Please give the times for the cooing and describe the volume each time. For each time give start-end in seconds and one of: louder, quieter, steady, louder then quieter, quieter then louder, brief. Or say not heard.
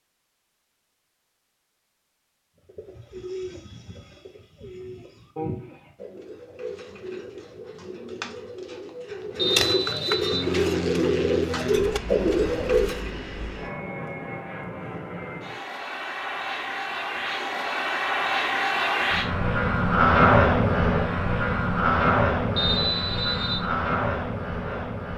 2.6-13.2 louder.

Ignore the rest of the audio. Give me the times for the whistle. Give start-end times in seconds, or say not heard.
9.3-10.5, 22.6-23.6.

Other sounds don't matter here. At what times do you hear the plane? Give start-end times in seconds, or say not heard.
10.3-25.1.